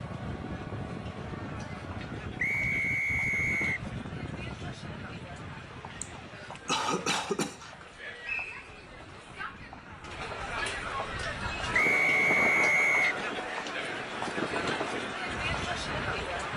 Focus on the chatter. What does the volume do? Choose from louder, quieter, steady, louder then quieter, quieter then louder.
louder.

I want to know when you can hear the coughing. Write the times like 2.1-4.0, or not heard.
6.0-7.8.